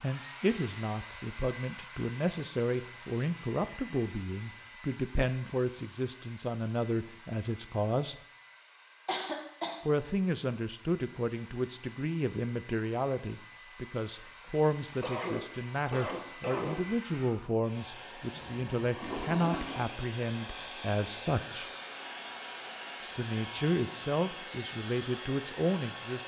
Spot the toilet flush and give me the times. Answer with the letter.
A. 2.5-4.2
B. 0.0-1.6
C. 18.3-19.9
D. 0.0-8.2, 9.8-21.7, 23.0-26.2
C.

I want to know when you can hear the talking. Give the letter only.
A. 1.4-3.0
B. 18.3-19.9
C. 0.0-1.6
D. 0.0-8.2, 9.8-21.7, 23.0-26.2
D.